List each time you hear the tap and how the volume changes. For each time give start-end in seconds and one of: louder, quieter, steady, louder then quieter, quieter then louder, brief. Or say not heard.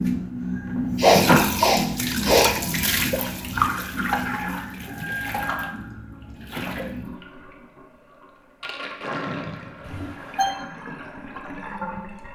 0.0-12.3 quieter.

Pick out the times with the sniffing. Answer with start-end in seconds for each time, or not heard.
0.9-2.5, 9.8-10.6.